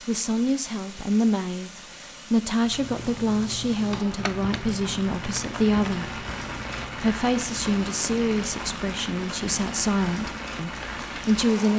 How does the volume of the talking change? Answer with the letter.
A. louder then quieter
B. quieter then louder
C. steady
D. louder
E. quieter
C.